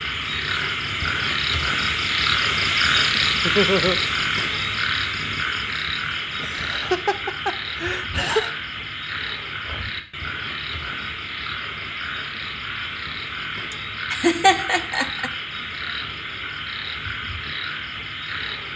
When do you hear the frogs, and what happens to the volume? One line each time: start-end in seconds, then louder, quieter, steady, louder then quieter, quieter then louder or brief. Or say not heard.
0.0-18.7 quieter.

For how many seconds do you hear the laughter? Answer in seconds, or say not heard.
4 s.